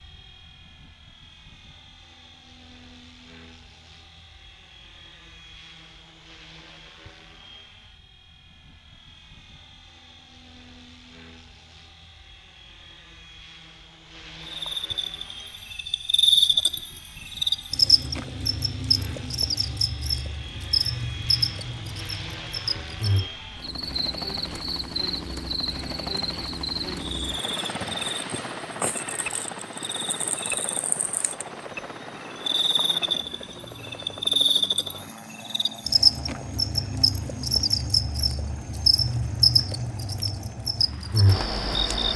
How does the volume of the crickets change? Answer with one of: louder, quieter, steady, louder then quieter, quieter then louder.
quieter then louder.